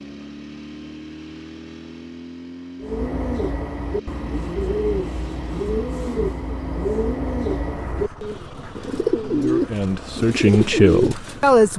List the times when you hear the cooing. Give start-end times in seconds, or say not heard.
2.8-11.6.